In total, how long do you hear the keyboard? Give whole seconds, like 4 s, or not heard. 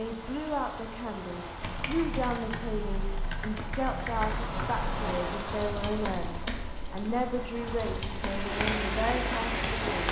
7 s.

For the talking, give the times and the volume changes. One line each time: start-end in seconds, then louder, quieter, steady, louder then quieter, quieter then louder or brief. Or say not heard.
0.0-10.0 steady.